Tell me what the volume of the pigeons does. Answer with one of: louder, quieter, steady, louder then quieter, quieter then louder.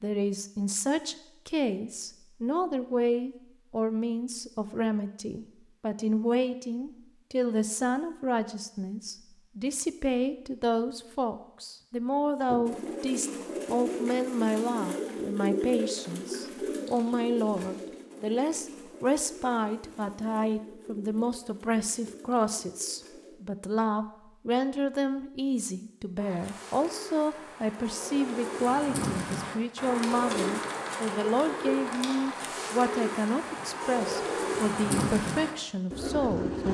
quieter then louder.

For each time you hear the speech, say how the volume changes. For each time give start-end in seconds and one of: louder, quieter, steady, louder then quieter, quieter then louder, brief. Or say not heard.
0.0-36.7 steady.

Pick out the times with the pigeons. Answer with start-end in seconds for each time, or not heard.
12.4-23.4, 26.1-36.7.